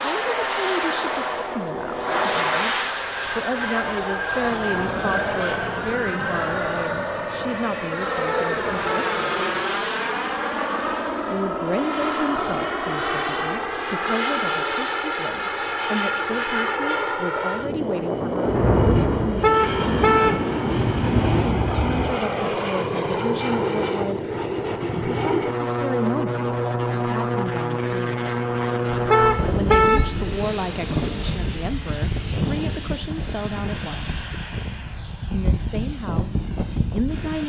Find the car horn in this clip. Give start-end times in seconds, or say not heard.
8.2-9.2, 19.4-20.4, 29.1-30.1.